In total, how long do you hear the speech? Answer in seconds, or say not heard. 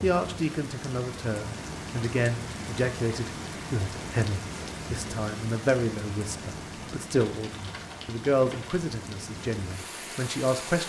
11 s.